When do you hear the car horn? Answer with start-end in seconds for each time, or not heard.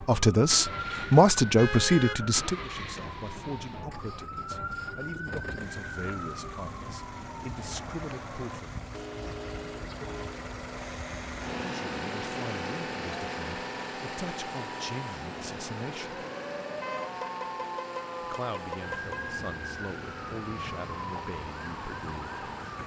1.6-2.2, 8.9-10.4, 16.8-19.4.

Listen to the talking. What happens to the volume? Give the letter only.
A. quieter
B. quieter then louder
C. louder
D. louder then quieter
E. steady
A.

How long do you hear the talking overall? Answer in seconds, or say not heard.
18 s.